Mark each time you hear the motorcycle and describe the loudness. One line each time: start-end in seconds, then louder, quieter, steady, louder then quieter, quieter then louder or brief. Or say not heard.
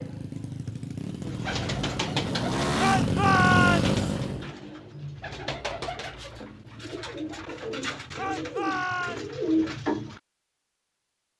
0.0-4.5 louder.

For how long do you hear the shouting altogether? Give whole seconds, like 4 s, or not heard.
2 s.